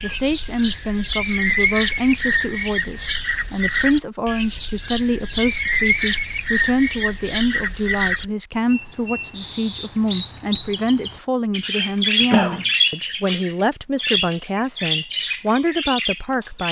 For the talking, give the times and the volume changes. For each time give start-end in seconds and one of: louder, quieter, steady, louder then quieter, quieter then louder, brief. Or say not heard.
0.0-16.6 steady.